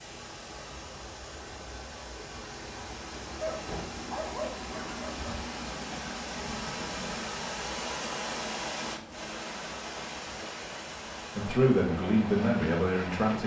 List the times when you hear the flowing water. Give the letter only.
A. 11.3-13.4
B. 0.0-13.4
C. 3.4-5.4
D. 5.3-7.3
B.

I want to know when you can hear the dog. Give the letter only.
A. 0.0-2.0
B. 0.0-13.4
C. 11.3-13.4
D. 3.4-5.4
D.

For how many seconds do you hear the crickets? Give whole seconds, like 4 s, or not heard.
not heard.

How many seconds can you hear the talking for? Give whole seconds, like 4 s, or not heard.
2 s.